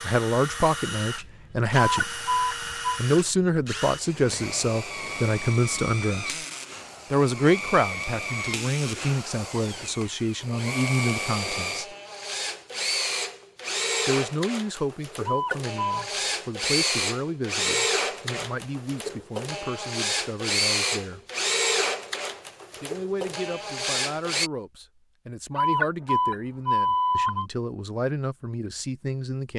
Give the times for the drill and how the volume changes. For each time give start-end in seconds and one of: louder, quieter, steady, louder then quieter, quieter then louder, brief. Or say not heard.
0.0-24.5 louder.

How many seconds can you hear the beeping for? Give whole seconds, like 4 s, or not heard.
4 s.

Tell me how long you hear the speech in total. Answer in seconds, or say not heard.
24 s.